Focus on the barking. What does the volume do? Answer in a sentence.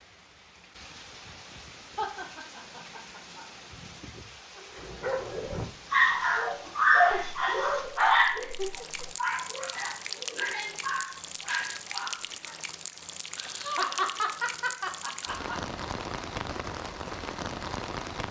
The loudness of the barking goes down.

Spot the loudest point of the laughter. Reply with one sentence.
The volume of the laughter peaks at 14 seconds.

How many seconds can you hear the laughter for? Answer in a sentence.
You can hear the laughter for 6 seconds altogether.